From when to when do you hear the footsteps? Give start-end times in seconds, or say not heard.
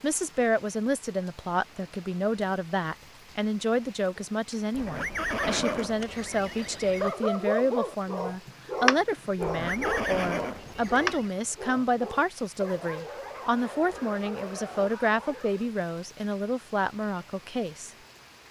not heard.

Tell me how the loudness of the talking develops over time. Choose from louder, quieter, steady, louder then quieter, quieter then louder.
steady.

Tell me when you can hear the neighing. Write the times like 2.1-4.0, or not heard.
4.7-7.2, 9.4-11.3.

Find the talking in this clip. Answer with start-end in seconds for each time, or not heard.
0.0-17.9.